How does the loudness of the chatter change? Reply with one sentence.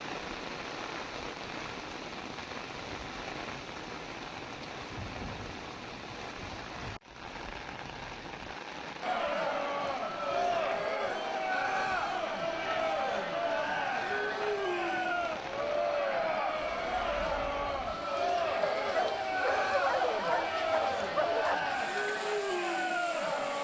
The loudness of the chatter stays about the same.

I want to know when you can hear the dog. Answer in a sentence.
You can hear the dog from 18.6 to 21.6 s.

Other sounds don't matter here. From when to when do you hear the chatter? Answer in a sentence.
The chatter can be heard from 9.0 to 23.5 s.